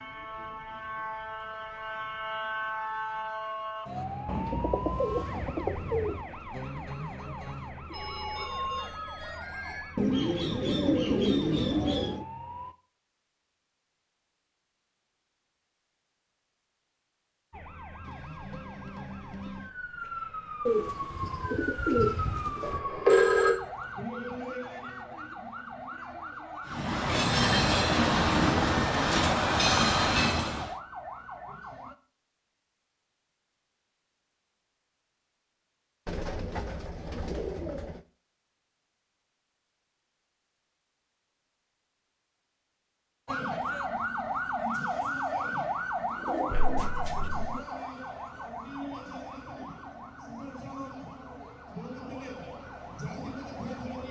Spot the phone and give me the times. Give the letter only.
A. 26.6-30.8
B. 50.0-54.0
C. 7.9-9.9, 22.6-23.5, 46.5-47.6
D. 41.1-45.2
C.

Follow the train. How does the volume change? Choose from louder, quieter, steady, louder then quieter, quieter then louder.
steady.